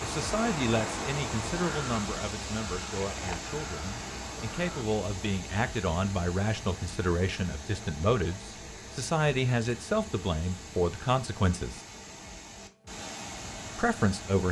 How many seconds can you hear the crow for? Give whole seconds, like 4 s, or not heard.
5 s.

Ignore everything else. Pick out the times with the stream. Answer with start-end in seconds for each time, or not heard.
0.0-14.4.